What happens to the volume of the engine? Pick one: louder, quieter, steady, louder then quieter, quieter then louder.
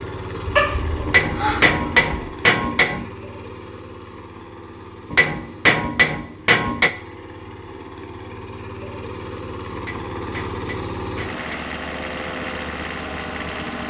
quieter then louder.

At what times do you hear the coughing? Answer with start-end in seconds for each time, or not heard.
0.5-2.2.